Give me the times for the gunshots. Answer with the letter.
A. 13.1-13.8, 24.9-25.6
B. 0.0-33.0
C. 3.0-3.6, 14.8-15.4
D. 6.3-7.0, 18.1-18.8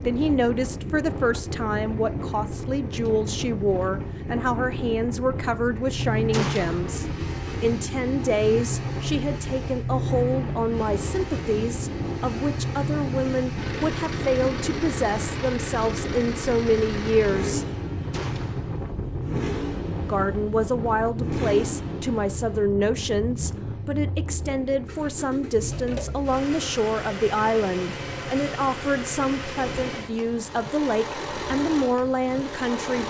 D.